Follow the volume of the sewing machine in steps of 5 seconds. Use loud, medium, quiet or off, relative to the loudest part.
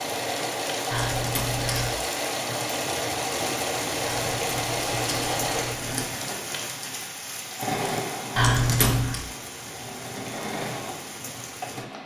loud, loud, medium.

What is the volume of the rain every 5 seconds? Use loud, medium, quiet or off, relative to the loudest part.
loud, loud, medium.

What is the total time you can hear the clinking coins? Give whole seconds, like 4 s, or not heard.
4 s.